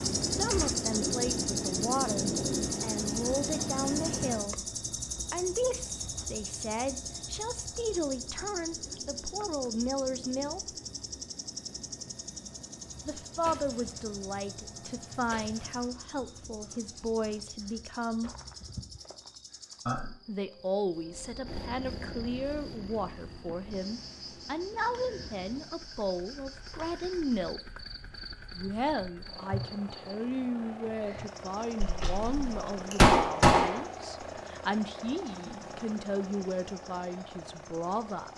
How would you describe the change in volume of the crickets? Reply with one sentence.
The loudness of the crickets goes down.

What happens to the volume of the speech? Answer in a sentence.
The loudness of the speech stays about the same.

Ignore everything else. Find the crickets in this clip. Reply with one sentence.
You can hear the crickets from 0.0 to 38.3 s.